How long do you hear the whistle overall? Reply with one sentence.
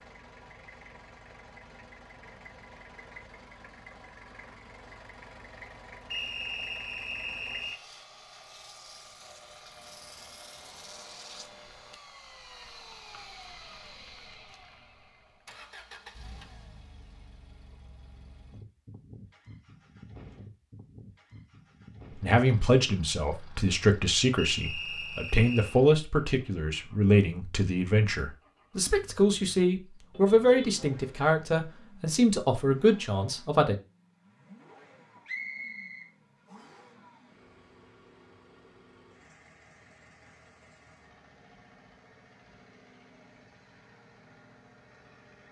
You can hear the whistle for 5 seconds altogether.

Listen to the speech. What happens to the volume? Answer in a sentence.
The volume of the speech stays about the same.